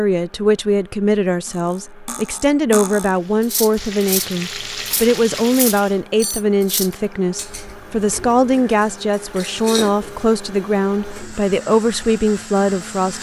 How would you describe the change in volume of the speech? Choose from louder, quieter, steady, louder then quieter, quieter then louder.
steady.